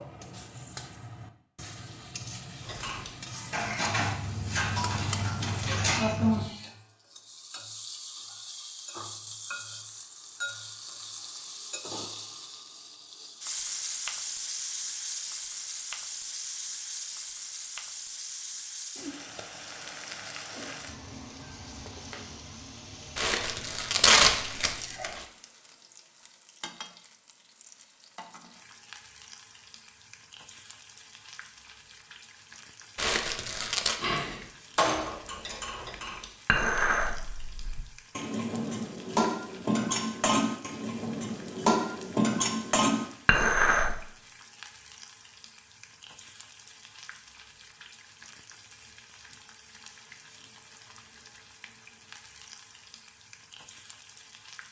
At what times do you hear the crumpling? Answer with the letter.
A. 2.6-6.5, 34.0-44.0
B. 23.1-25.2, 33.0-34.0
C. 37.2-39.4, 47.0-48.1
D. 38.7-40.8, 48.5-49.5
B.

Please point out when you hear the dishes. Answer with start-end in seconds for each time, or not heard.
2.6-6.5, 34.0-44.0.